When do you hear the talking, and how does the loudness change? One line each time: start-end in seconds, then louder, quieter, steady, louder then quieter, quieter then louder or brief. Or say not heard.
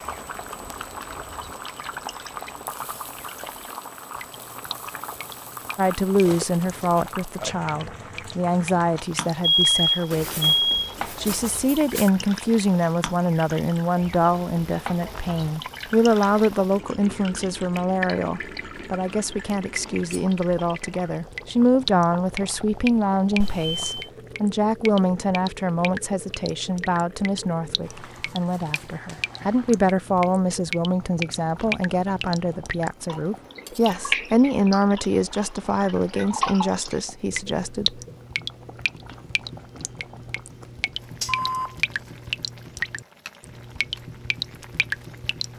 5.8-38.0 steady.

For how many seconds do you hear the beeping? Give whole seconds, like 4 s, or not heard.
3 s.